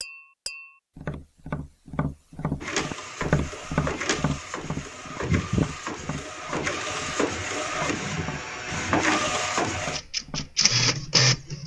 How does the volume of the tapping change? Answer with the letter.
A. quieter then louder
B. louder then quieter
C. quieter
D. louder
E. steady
B.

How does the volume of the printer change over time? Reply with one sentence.
The volume of the printer goes up.